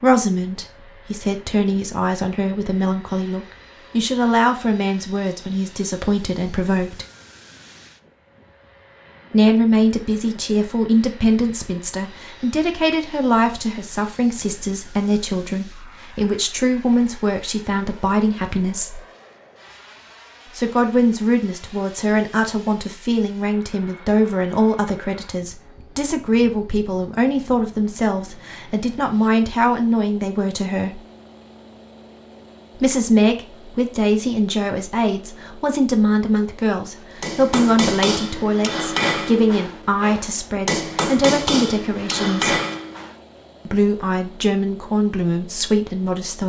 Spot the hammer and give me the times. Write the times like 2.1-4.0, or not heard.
37.2-43.1.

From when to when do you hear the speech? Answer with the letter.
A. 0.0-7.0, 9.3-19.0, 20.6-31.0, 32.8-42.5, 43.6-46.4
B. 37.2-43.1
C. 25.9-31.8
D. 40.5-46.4
A.